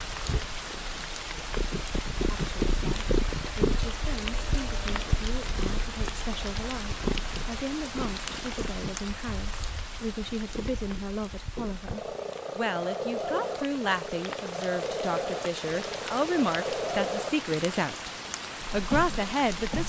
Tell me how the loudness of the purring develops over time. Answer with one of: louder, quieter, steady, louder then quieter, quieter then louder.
quieter then louder.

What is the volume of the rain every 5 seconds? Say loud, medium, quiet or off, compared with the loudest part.
loud, loud, medium, loud.